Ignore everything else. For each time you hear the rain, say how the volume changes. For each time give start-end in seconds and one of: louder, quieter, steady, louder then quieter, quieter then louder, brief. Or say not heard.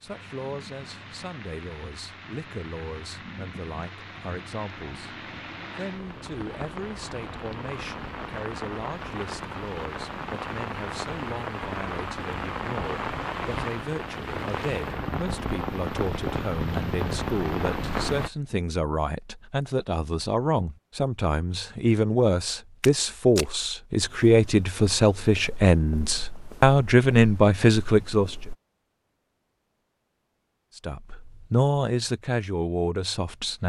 0.0-18.3 louder.